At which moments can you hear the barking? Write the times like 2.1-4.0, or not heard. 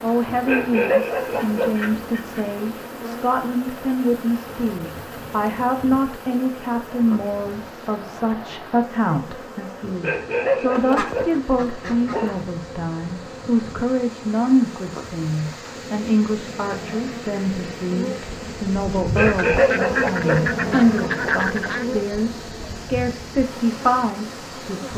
0.2-1.9, 9.8-12.6, 18.9-21.4.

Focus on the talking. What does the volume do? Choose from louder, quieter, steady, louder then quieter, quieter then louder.
steady.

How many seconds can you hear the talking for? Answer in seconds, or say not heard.
25 s.